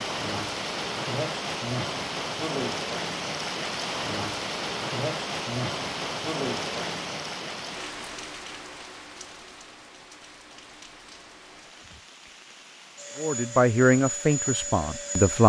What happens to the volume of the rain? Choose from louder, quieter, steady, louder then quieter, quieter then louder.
quieter.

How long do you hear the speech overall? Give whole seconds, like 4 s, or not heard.
2 s.